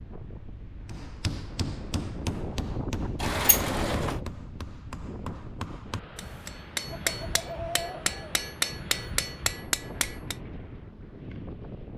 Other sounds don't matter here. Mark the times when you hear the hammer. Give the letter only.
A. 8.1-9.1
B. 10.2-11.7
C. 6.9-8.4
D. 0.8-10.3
D.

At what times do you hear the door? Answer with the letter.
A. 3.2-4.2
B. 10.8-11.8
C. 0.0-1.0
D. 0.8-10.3
A.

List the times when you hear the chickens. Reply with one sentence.
The chickens can be heard from 6.9 to 8.4 s.